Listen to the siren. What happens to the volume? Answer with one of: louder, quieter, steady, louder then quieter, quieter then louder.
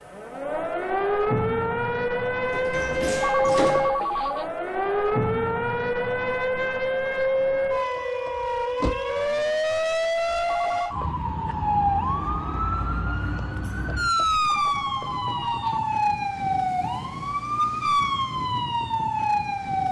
steady.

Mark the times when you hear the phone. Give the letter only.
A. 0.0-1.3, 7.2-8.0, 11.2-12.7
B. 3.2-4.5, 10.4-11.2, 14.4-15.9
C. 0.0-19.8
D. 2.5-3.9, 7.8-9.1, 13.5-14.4
B.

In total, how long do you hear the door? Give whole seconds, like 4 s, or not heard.
4 s.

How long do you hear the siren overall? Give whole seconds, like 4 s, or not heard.
20 s.